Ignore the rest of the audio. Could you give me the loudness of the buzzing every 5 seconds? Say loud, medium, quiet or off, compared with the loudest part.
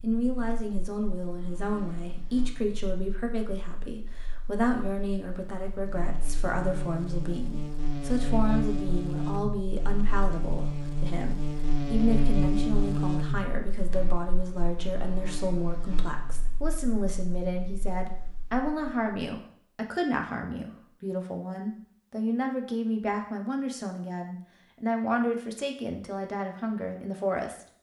quiet, loud, loud, quiet, off, off.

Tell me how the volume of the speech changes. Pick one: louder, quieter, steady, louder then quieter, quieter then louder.
steady.